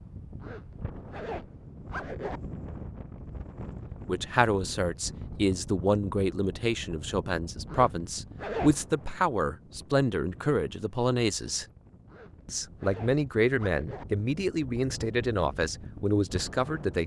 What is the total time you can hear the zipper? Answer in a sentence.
You can hear the zipper for 5 seconds altogether.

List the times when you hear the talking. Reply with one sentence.
You can hear the talking from 4.0 to 11.7 s and from 12.4 to 17.0 s.